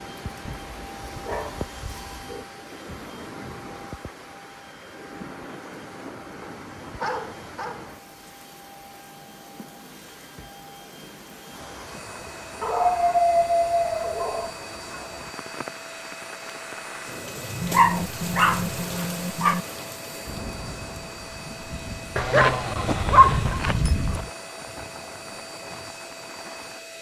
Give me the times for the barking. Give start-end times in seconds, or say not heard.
0.5-2.5, 6.4-7.9, 12.6-14.5, 17.6-19.6, 22.1-24.2.